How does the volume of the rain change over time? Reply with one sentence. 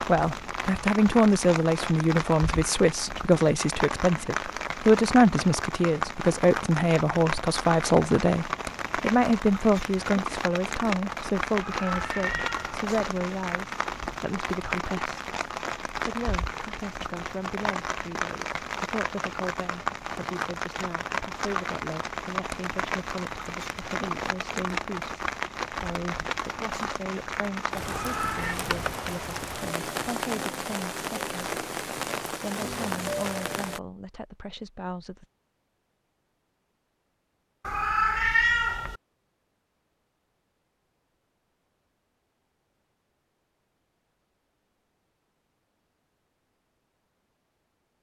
The volume of the rain stays about the same.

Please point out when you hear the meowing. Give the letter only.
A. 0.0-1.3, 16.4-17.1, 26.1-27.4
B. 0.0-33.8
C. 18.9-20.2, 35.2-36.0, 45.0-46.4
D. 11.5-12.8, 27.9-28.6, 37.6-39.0
D.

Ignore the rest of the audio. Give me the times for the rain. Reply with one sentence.
You can hear the rain from 0.0 to 33.8 s.